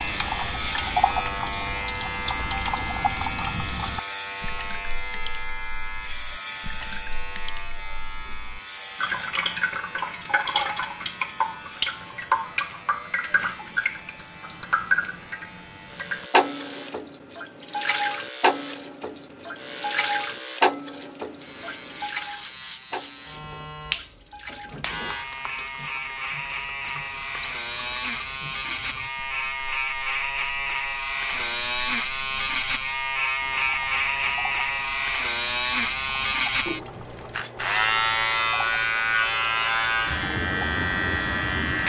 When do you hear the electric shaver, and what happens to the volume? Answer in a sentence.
You can hear the electric shaver from 0.0 to 41.8 s, getting quieter then louder.